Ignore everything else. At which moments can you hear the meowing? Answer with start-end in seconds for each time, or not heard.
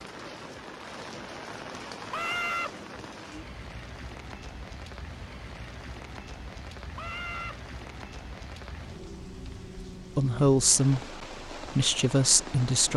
2.1-2.7, 7.0-7.5.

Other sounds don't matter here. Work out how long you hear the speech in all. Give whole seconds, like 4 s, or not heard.
3 s.